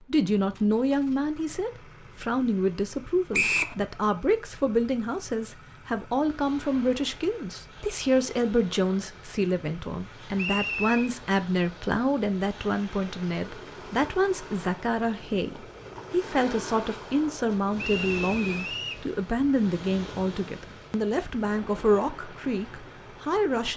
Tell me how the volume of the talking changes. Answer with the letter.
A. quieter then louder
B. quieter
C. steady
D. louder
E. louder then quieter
C.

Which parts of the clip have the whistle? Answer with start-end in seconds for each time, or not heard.
3.3-3.8, 10.3-11.1, 17.8-19.1.